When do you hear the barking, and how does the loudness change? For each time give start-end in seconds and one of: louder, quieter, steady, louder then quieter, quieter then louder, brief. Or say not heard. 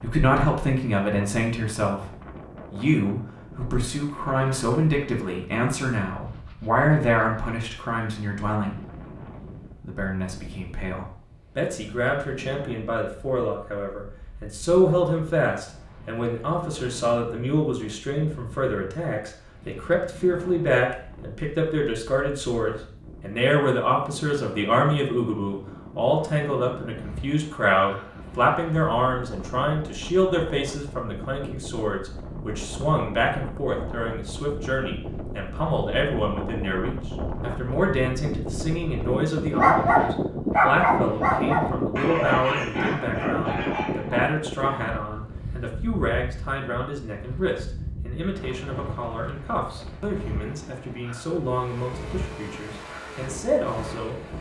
39.5-45.0 quieter.